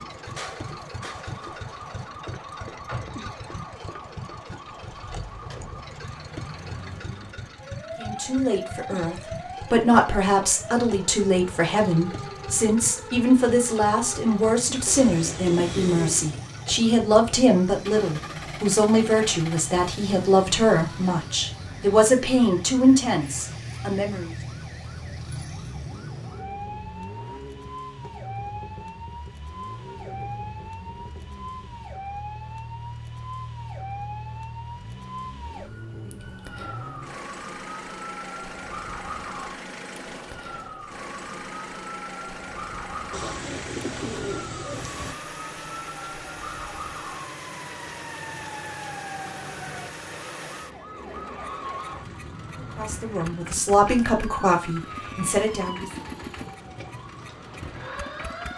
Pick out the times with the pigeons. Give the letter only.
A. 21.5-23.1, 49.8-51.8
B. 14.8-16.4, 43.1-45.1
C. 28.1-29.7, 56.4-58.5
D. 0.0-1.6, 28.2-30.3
B.